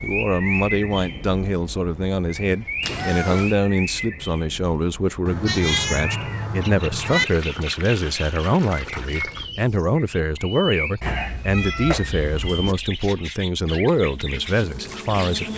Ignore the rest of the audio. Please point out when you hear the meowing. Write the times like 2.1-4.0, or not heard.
2.8-3.5, 5.2-7.2, 11.0-12.8.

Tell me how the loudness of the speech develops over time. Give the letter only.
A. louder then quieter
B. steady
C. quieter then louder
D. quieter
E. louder
B.